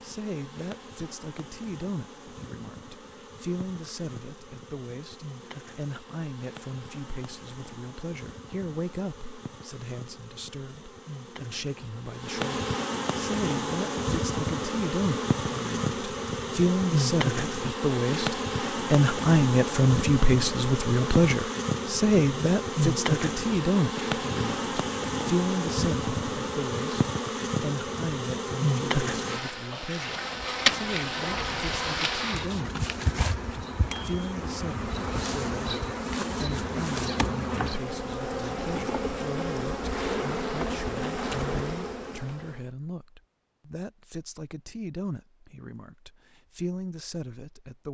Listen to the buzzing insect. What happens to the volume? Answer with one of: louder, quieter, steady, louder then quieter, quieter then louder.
louder.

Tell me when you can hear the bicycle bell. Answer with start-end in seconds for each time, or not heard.
33.9-34.4.